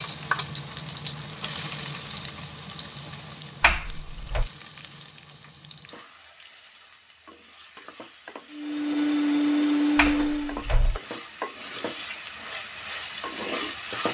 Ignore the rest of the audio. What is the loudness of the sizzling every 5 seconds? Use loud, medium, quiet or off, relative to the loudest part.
loud, quiet, loud.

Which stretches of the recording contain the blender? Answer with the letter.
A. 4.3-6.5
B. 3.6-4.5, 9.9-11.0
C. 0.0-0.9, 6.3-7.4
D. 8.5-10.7
D.